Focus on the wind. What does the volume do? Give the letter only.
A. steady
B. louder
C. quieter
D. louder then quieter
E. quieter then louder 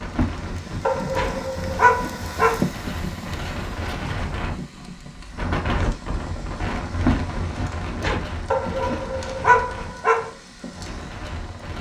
D.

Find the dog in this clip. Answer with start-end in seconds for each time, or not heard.
0.8-2.6, 8.5-10.3.